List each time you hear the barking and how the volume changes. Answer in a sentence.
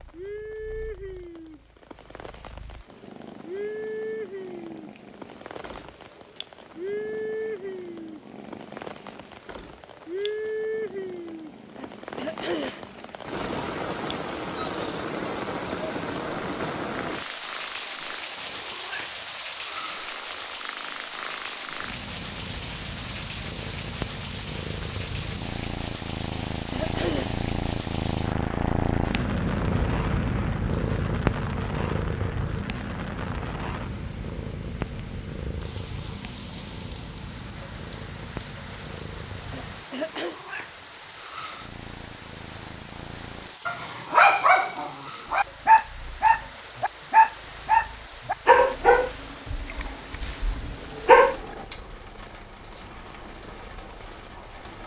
You can hear the barking from 43.6 to 51.6 s, at a steady volume.